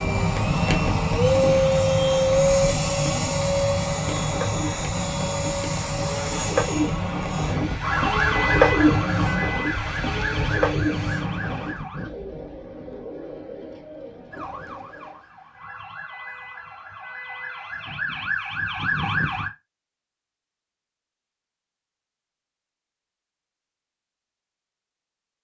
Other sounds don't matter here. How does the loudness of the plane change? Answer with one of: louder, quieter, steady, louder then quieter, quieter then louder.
quieter.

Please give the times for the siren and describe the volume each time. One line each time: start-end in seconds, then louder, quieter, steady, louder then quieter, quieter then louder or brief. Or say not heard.
7.8-12.1 quieter
14.3-19.5 louder.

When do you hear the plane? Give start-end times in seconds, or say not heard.
0.0-11.8.